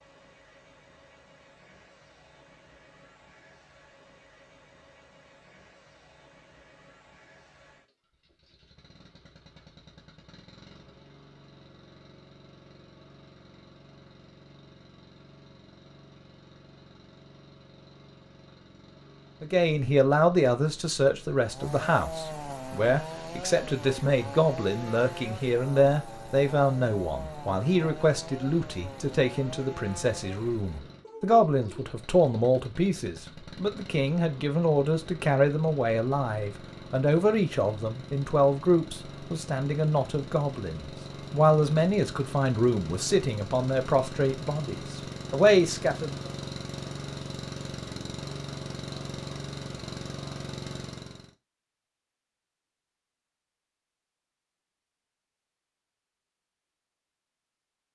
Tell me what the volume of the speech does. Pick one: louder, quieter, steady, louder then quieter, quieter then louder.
steady.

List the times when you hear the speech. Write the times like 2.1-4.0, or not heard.
19.4-46.3.